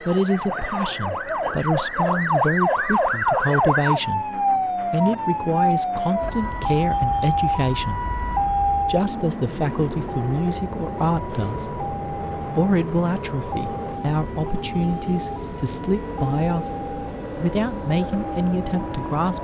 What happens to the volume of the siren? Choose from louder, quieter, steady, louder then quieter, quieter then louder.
quieter.